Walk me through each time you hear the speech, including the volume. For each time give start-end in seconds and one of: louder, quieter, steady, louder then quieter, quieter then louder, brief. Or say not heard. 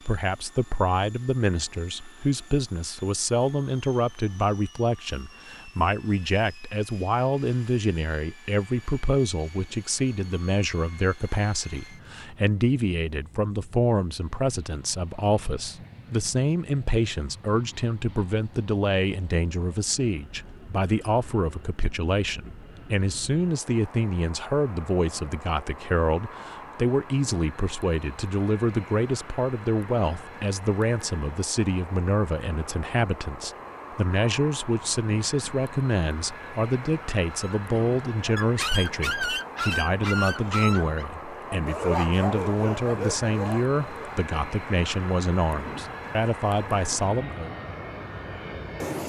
0.1-47.5 steady.